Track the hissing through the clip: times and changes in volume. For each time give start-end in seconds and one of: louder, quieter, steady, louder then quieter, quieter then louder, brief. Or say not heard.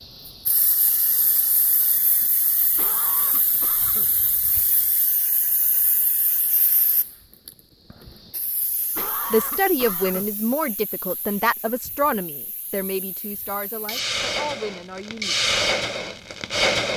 0.2-16.9 quieter then louder.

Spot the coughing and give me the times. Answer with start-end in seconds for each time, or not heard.
2.8-4.2, 8.9-10.3.